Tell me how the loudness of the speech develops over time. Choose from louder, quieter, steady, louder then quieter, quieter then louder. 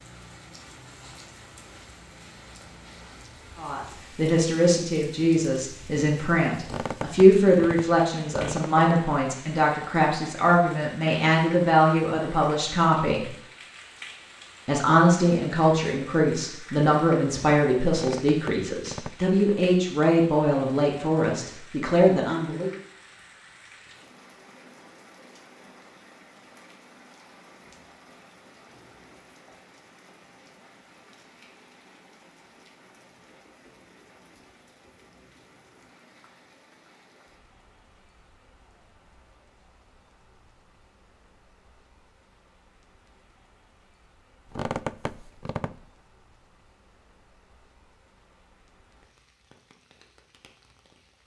steady.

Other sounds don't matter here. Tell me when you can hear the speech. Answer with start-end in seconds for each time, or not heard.
3.5-13.3, 14.7-22.7.